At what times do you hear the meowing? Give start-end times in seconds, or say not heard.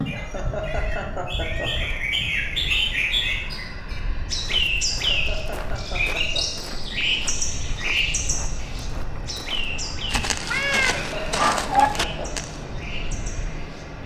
0.6-2.1, 10.4-11.9.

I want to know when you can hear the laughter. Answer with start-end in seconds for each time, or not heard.
0.1-1.9, 4.9-6.7, 10.9-12.3.